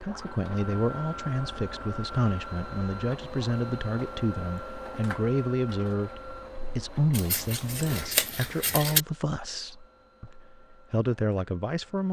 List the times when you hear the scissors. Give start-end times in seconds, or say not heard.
7.1-9.1.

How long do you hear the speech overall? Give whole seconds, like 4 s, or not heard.
12 s.